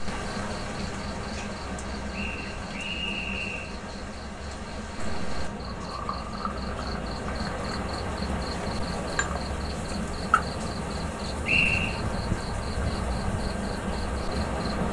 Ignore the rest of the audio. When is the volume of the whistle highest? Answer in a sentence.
The volume of the whistle peaks at 12 seconds.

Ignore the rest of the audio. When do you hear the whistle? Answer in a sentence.
You can hear the whistle from 2.1 to 3.8 s and from 11.4 to 12.0 s.